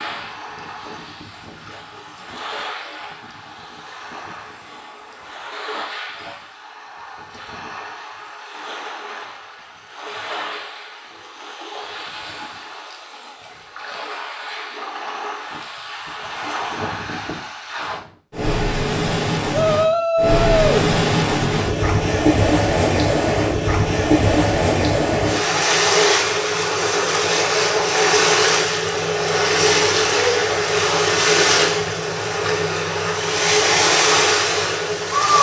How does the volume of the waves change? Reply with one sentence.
The loudness of the waves goes up.